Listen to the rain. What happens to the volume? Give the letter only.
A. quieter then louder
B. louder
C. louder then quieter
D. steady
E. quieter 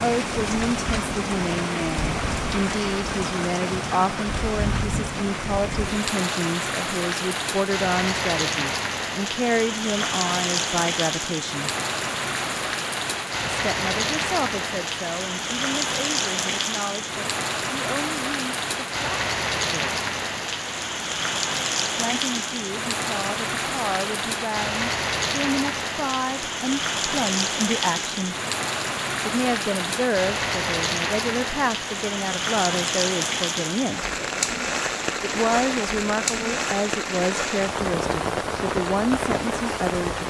D.